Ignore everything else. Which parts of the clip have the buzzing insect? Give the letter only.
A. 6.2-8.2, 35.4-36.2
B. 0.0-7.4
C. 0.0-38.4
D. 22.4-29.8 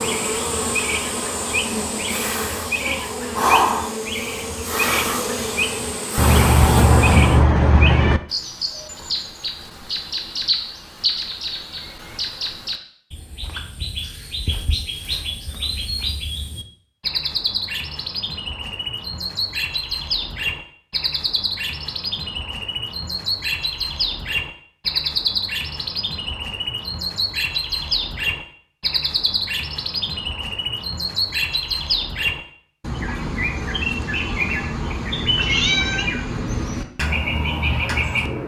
B.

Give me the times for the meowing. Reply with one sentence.
The meowing can be heard from 6.2 to 8.2 s and from 35.4 to 36.2 s.